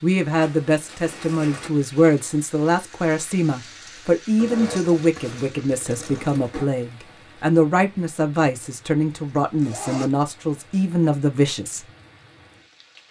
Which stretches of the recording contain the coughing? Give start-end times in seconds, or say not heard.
not heard.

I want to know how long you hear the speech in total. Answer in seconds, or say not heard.
12 s.